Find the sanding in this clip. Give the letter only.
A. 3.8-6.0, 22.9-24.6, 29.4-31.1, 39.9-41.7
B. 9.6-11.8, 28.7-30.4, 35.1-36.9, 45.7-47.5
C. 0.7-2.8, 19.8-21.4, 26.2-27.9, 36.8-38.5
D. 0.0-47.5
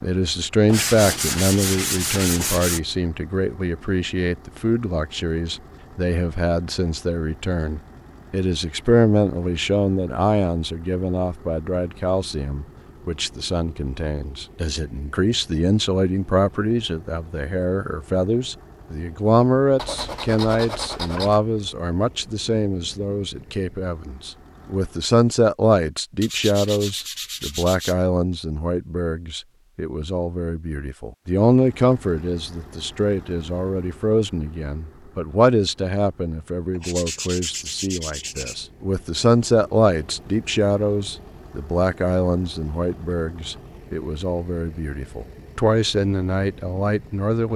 C.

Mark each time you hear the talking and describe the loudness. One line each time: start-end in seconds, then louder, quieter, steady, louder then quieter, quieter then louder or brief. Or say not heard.
0.0-47.5 steady.